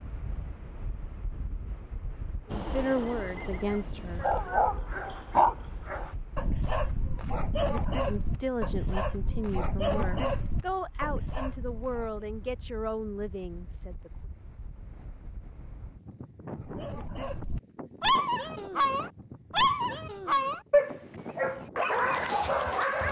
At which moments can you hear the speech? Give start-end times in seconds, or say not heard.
2.5-4.4, 8.1-14.1.